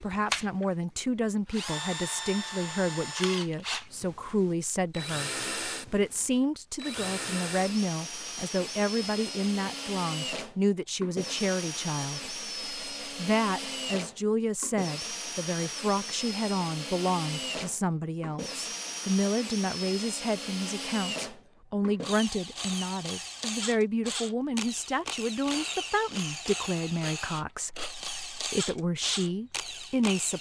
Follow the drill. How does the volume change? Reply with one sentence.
The loudness of the drill stays about the same.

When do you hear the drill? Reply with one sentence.
You can hear the drill from 0.0 to 30.3 s.